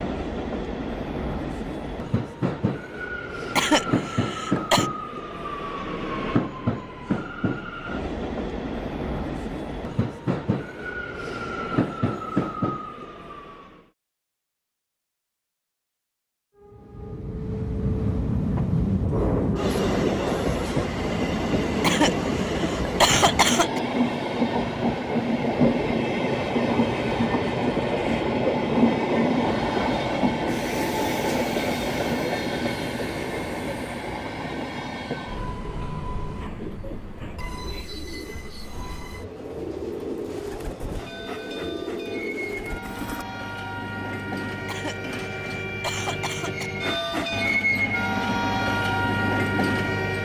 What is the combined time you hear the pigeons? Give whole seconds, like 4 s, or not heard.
7 s.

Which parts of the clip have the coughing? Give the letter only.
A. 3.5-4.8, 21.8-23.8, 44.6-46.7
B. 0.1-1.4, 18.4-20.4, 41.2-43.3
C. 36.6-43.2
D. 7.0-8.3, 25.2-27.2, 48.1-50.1
A.